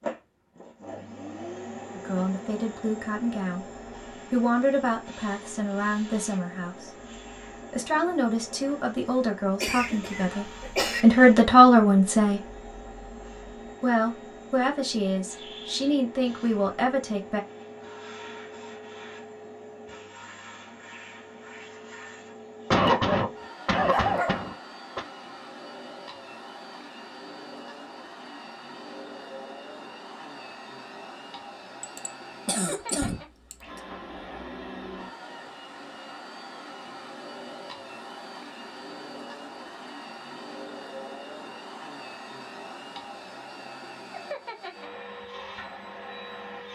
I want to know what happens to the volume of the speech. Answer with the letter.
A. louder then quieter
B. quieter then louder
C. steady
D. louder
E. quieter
A.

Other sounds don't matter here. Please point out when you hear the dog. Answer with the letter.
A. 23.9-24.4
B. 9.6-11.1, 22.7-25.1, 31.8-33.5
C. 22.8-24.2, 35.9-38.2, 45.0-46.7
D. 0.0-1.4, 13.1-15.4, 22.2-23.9
A.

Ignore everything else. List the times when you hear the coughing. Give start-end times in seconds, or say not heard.
9.6-11.1, 22.7-25.1, 31.8-33.5.